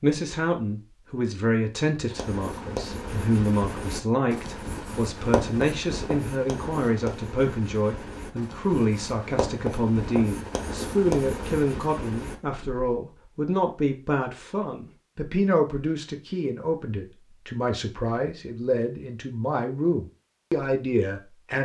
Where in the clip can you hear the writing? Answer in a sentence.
You can hear the writing from 2.1 to 12.9 s.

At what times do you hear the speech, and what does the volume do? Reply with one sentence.
The speech can be heard from 0.0 to 21.5 s, at a steady volume.